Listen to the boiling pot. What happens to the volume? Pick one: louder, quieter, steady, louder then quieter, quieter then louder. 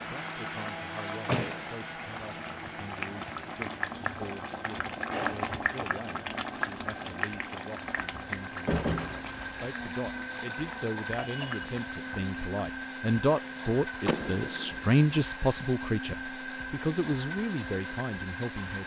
louder then quieter.